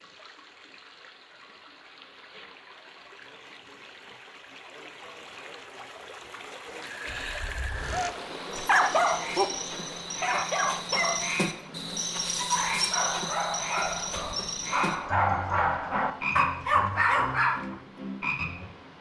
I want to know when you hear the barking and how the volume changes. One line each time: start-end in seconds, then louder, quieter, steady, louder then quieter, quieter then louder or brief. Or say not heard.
7.8-17.8 quieter then louder.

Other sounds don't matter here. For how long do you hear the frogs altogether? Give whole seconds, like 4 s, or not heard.
12 s.